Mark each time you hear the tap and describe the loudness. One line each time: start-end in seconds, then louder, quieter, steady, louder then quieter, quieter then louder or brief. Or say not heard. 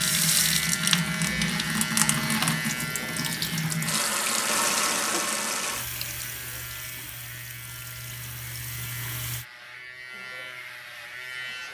0.0-9.4 quieter.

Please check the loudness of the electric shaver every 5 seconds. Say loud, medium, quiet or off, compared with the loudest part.
loud, medium, medium.